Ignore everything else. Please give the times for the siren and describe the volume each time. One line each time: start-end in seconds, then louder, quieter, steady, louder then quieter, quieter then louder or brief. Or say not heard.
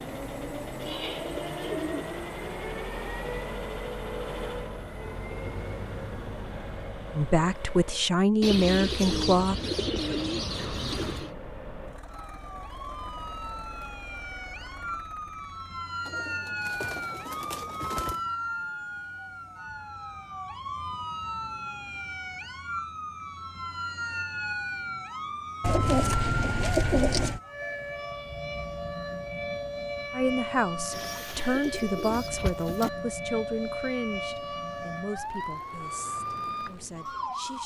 12.1-37.6 steady.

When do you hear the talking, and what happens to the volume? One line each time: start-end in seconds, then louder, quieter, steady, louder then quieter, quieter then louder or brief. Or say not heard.
7.1-9.6 brief
30.1-37.6 quieter.